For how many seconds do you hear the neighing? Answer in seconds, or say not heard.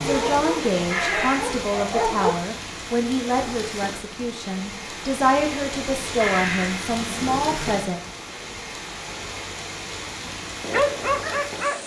2 s.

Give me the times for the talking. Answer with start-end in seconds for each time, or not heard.
0.0-8.0.